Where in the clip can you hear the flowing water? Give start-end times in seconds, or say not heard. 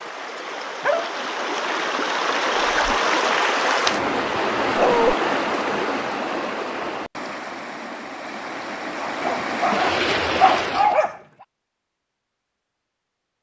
0.0-11.0.